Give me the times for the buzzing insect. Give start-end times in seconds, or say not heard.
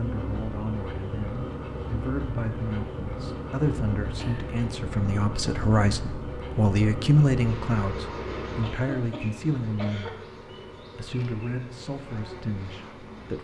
0.0-13.4.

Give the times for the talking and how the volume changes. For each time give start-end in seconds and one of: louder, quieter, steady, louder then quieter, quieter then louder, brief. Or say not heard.
0.0-13.4 louder then quieter.